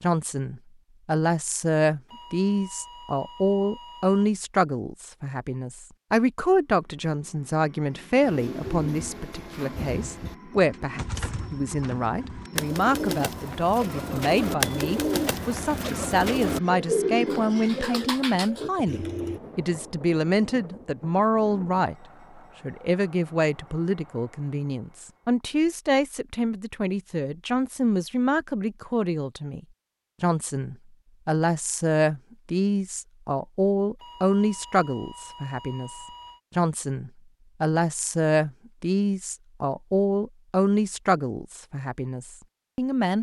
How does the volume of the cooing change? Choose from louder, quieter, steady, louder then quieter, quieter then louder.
louder.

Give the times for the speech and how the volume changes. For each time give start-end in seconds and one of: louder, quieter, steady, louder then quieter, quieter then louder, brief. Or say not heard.
0.0-29.6 steady
30.2-43.1 steady.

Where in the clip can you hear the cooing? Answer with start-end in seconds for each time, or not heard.
8.2-19.4.